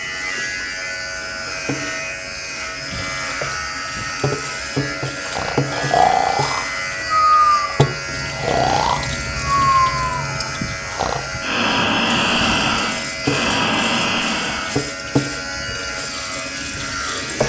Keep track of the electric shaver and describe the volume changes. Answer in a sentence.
The loudness of the electric shaver stays about the same.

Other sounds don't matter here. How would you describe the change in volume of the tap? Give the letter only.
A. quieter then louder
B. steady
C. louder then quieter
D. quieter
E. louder
E.